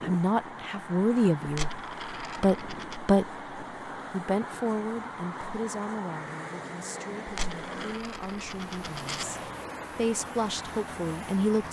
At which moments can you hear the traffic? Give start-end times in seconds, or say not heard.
0.0-11.6.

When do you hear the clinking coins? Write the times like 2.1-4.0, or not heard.
1.4-3.0, 7.2-9.2.